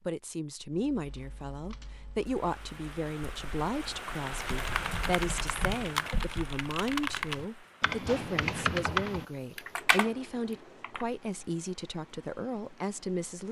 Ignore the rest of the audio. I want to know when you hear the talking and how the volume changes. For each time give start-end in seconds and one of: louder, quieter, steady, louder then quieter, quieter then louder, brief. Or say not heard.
0.1-13.4 steady.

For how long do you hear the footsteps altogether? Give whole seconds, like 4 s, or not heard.
not heard.